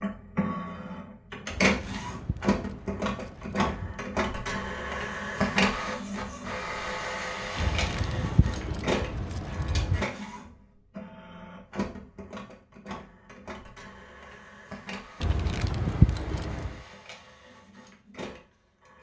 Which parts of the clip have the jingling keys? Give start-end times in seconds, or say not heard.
1.4-4.0, 7.5-10.1, 15.2-16.8.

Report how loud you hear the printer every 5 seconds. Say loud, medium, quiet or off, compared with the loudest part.
loud, loud, medium, quiet.